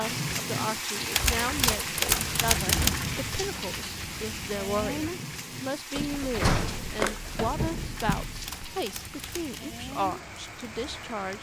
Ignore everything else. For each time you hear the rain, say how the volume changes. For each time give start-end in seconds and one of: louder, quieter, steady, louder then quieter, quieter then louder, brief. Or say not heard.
0.0-11.3 quieter.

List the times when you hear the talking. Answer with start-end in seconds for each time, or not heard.
0.0-11.3.